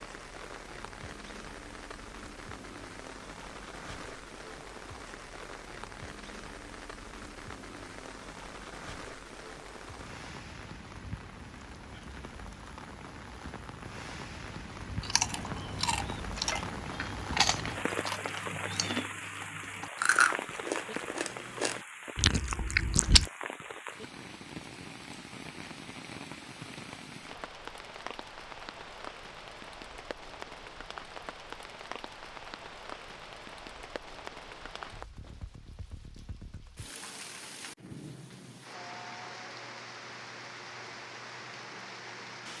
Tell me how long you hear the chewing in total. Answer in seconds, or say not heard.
8 s.